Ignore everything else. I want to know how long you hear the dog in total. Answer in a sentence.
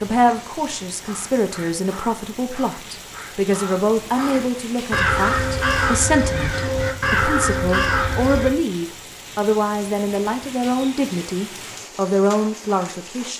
You can't hear the dog here.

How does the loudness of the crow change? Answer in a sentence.
The loudness of the crow goes up.